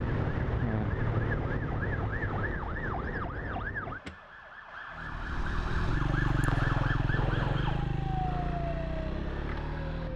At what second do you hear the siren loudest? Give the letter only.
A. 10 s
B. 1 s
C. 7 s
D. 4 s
B.